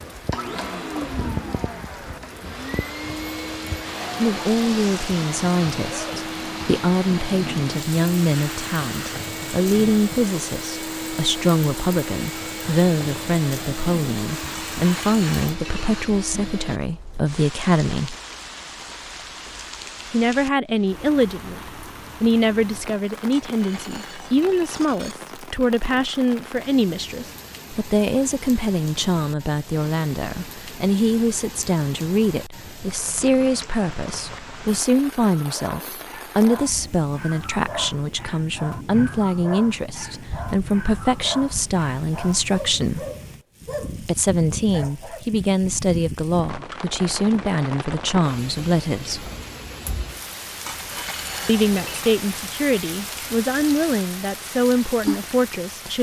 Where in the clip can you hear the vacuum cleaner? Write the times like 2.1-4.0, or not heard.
0.1-16.8.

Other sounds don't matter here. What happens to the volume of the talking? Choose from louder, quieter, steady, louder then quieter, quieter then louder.
steady.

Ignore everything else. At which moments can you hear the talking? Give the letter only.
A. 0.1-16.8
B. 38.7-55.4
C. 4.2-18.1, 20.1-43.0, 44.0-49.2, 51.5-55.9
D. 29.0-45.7
C.